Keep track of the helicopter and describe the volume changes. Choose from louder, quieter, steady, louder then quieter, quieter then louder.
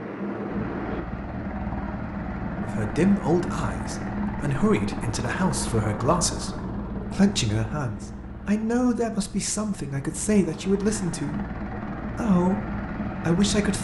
quieter then louder.